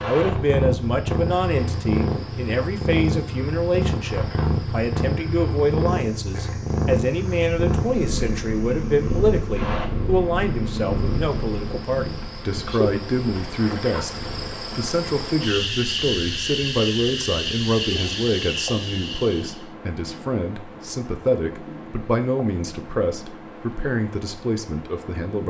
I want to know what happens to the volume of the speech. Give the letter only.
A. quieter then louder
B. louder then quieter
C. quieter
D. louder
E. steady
E.